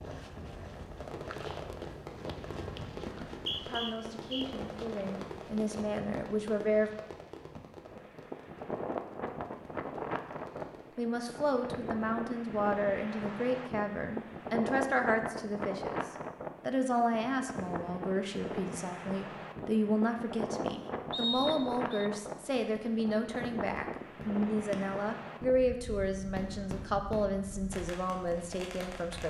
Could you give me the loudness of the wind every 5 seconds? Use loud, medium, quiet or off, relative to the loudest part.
medium, loud, loud, loud, loud, medium.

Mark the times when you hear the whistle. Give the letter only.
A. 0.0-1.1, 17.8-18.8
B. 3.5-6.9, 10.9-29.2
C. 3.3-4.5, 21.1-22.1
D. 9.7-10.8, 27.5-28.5
C.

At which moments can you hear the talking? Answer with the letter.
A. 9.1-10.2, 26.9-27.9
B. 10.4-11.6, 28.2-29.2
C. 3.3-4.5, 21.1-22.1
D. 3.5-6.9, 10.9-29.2
D.